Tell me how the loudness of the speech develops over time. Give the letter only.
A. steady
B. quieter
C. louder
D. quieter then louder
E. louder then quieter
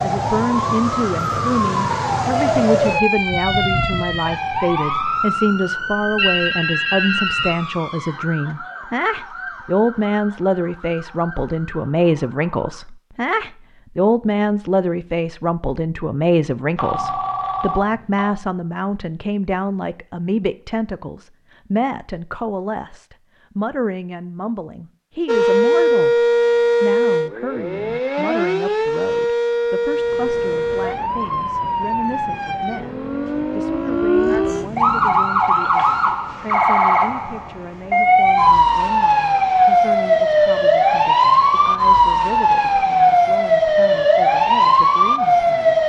B.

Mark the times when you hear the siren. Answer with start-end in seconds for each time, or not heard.
0.0-12.8, 25.2-45.8.